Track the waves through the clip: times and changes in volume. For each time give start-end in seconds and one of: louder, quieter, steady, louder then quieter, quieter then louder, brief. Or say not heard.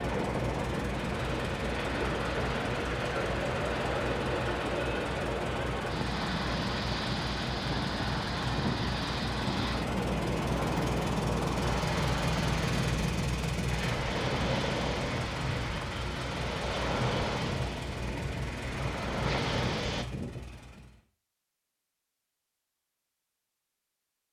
0.0-20.1 steady.